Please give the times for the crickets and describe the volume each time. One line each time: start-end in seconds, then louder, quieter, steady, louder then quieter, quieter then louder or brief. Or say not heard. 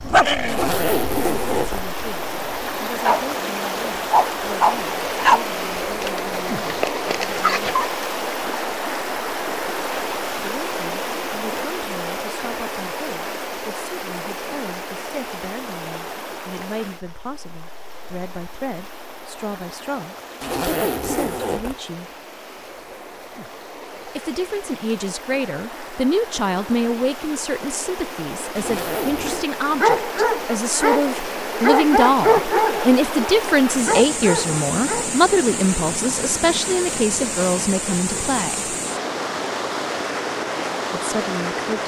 not heard.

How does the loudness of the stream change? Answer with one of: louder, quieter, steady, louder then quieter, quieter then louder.
quieter then louder.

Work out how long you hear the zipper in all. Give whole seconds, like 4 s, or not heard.
4 s.